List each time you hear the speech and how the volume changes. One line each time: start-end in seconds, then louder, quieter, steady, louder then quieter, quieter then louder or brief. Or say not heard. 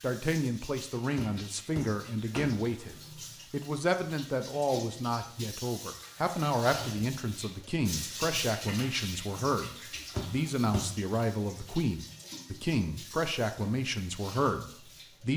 0.0-15.3 steady.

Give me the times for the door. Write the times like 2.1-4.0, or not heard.
1.1-2.6, 10.1-10.9.